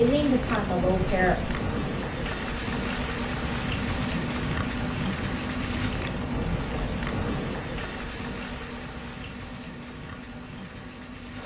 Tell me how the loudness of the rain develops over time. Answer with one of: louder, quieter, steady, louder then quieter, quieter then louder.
quieter.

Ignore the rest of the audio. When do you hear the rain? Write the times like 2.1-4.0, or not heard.
0.0-11.4.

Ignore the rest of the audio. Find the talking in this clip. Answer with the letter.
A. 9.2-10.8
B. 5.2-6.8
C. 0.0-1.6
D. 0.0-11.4
C.